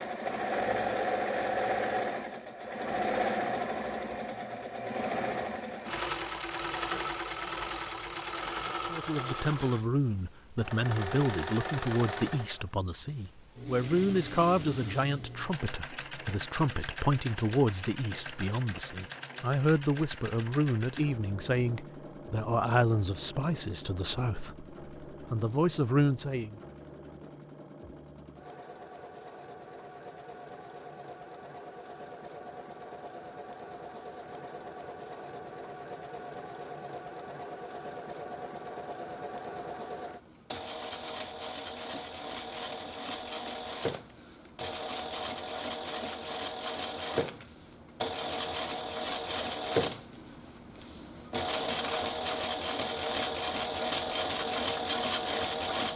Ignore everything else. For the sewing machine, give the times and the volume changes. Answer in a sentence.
The sewing machine can be heard from 0.0 to 55.9 s, getting quieter then louder.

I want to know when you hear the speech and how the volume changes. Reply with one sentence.
The speech can be heard from 8.9 to 26.6 s, at a steady volume.